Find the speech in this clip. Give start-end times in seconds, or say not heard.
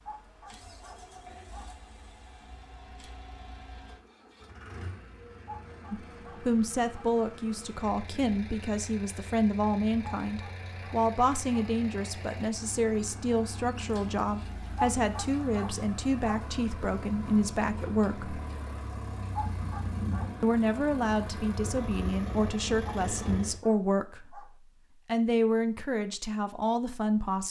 5.9-18.4, 20.4-27.4.